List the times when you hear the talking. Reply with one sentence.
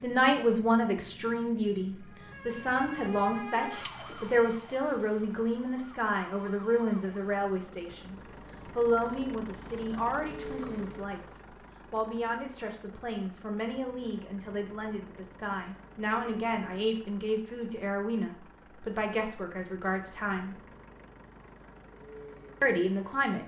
You can hear the talking from 0.0 to 20.6 s and from 22.6 to 23.4 s.